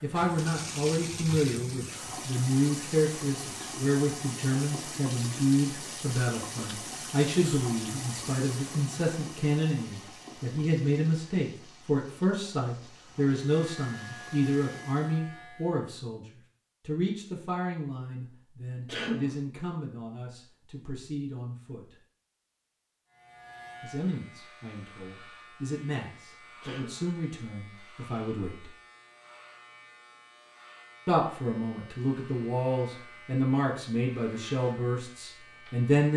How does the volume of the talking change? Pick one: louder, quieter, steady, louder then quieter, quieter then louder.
quieter then louder.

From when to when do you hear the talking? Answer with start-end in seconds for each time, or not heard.
0.0-16.2, 16.9-21.9, 23.8-28.7, 31.1-36.1.